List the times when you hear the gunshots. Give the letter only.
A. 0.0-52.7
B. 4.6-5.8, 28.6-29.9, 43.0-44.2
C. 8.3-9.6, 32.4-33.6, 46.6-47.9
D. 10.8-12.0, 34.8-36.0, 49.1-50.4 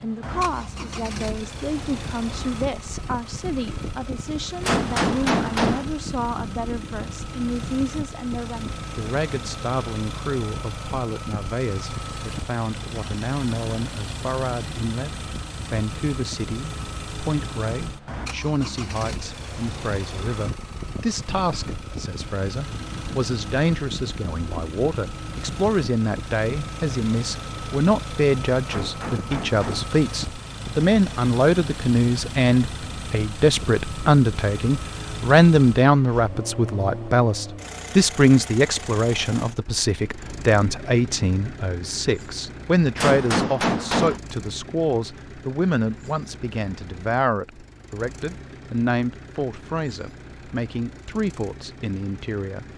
B.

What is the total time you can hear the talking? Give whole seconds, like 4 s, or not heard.
53 s.